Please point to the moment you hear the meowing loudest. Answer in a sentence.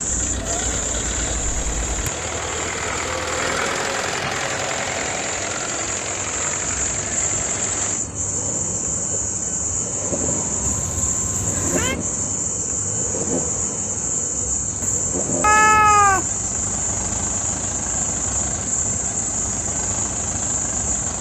The loudest moment of the meowing is at 16 seconds.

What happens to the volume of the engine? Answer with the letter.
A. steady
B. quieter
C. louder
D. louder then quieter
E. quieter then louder
B.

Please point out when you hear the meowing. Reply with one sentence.
You can hear the meowing from 0.1 to 2.1 s, from 10.6 to 11.9 s and from 14.8 to 16.2 s.